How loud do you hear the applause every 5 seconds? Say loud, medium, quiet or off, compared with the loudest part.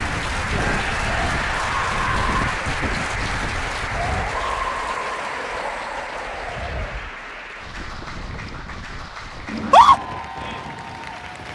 loud, medium, medium.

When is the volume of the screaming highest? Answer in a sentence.
The volume of the screaming peaks at 10 seconds.